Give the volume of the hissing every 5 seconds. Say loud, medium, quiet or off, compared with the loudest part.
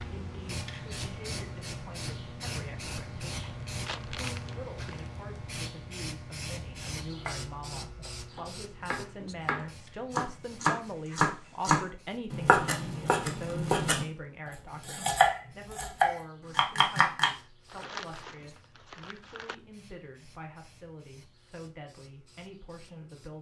loud, loud, quiet, quiet, quiet.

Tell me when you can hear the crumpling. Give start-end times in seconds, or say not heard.
3.4-4.8, 17.6-19.6.